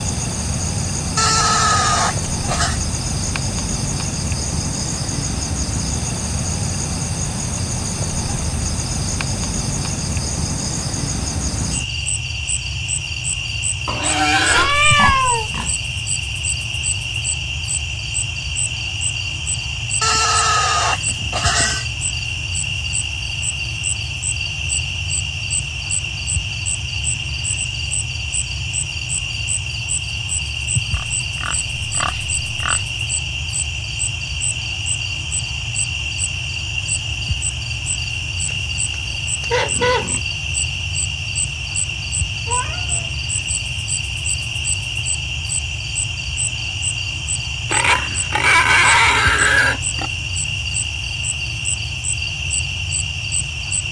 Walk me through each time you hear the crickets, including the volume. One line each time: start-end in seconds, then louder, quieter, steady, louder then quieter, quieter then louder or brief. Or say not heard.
0.0-53.8 steady.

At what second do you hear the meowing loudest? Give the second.
15 s.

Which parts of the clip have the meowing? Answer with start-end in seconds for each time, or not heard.
14.5-15.5, 42.5-43.1.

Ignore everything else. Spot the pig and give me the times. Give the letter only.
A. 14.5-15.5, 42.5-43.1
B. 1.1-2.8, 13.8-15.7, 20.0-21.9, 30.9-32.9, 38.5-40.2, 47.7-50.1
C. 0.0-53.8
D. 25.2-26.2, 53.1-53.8
B.